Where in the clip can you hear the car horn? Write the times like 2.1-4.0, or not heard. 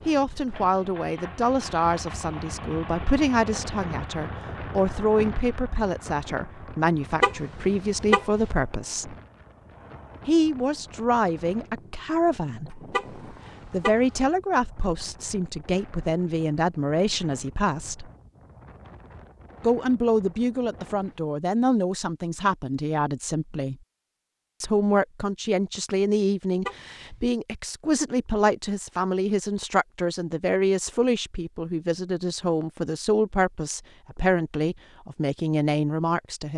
7.2-8.4, 12.9-14.2, 26.6-27.2.